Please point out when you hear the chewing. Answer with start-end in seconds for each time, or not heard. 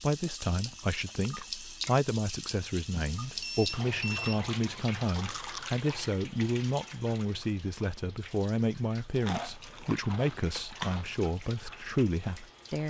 0.7-2.1, 5.2-5.8, 9.2-11.2.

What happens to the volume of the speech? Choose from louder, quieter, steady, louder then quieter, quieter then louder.
steady.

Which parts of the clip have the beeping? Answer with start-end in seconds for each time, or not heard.
2.9-4.4.